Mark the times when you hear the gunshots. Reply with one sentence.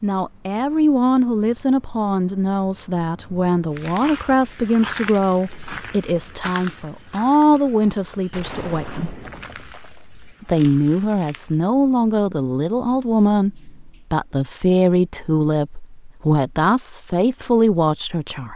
The gunshots can be heard from 8.3 to 10.2 s.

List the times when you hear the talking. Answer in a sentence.
The talking can be heard from 0.0 to 9.2 s and from 10.4 to 18.5 s.